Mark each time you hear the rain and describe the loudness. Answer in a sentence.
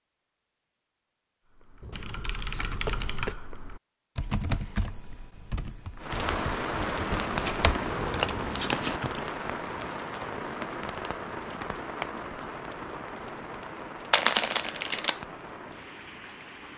You can hear the rain from 6.0 to 16.7 s, getting quieter.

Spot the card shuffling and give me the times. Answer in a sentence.
The card shuffling can be heard from 1.8 to 3.4 s, from 7.0 to 9.0 s and from 14.1 to 15.2 s.